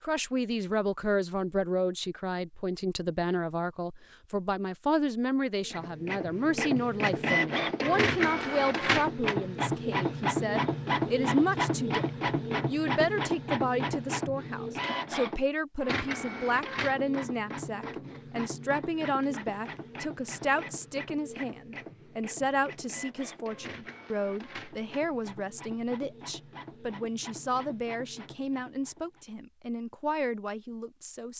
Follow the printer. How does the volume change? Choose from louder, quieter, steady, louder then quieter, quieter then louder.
quieter.